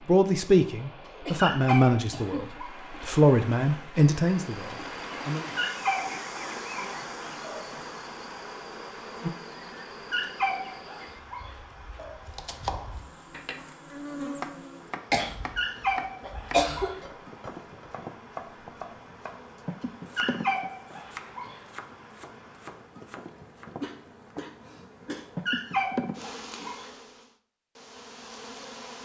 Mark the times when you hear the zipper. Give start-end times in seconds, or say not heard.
not heard.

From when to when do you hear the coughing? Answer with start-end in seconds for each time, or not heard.
1.2-3.2, 15.1-15.6, 16.2-17.1, 23.6-25.2.